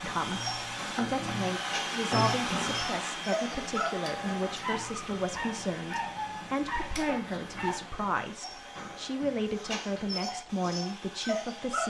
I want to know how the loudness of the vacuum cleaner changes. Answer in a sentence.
The loudness of the vacuum cleaner goes down.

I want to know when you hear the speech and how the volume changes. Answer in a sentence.
You can hear the speech from 0.0 to 11.8 s, at a steady volume.